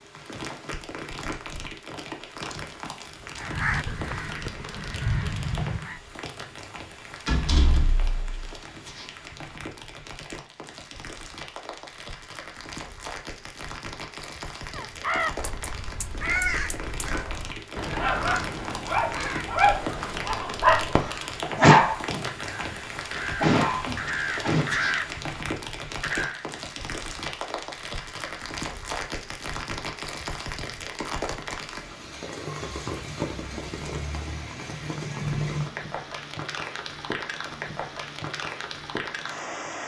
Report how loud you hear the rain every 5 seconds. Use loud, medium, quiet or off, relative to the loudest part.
medium, medium, medium, loud, loud, loud, loud, loud.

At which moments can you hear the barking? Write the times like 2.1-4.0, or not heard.
17.4-22.3, 23.1-24.6.